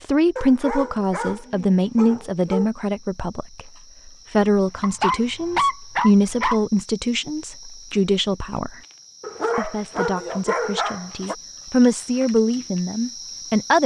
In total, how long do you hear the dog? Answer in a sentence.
You can hear the dog for 6 seconds altogether.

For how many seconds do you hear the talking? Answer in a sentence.
You can hear the talking for 13 seconds altogether.